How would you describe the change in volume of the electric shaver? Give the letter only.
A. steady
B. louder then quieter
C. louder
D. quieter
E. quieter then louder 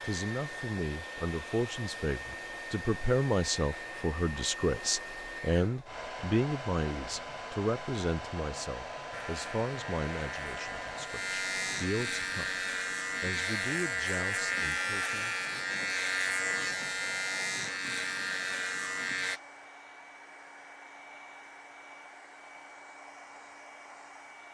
C.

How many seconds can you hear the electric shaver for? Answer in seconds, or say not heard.
10 s.